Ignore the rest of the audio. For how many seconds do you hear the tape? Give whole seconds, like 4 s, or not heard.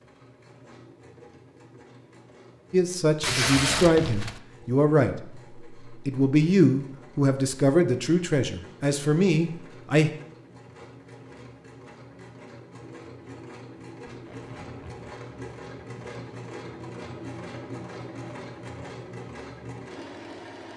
2 s.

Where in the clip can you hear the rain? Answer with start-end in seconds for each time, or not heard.
not heard.